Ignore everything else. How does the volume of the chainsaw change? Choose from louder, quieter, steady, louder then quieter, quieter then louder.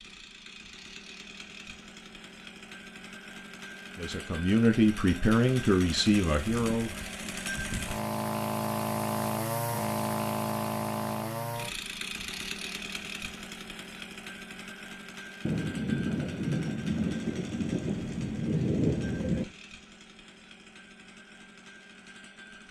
louder then quieter.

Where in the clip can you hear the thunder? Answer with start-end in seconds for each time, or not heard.
15.4-19.4.